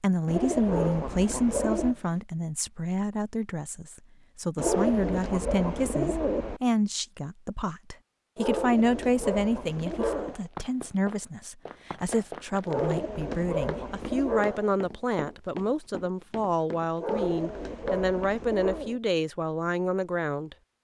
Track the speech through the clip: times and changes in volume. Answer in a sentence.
The speech can be heard from 0.0 to 20.6 s, at a steady volume.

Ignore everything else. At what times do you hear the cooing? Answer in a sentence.
The cooing can be heard from 0.2 to 1.9 s, from 4.5 to 6.6 s, from 8.4 to 10.3 s, from 12.7 to 14.5 s and from 17.1 to 19.0 s.